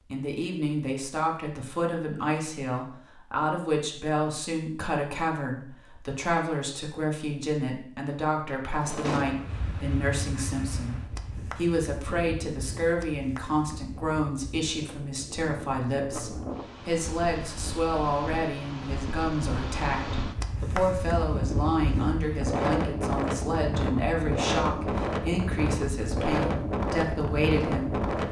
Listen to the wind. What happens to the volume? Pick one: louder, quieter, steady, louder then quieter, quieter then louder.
louder.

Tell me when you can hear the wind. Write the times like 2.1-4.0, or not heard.
8.8-28.2.